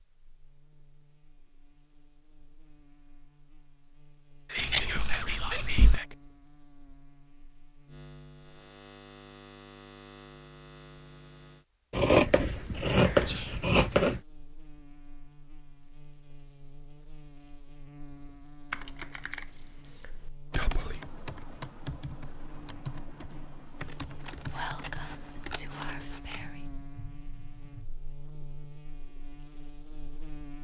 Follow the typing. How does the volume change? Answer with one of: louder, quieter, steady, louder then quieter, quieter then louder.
quieter.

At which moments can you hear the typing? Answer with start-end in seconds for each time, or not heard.
18.7-27.9.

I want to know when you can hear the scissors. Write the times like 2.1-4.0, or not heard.
4.5-6.0, 11.9-14.2, 23.9-26.4.